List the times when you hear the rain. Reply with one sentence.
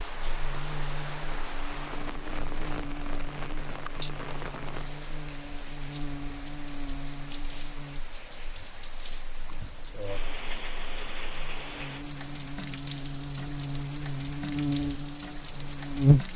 You can hear the rain from 0.0 to 16.3 s.